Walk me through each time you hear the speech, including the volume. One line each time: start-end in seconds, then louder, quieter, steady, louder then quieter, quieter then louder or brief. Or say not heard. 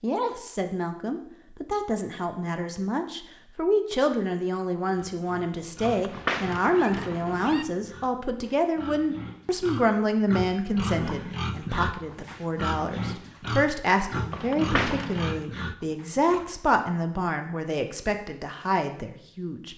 0.0-19.7 steady.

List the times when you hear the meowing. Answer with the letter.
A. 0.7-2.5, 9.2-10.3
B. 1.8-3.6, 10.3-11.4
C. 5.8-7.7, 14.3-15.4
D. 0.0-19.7
C.